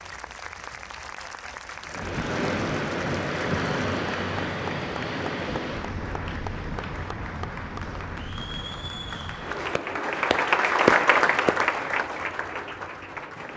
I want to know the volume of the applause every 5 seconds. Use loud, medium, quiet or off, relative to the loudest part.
quiet, quiet, loud.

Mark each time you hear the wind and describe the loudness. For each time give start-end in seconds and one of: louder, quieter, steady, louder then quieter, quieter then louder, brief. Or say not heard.
1.9-13.5 quieter.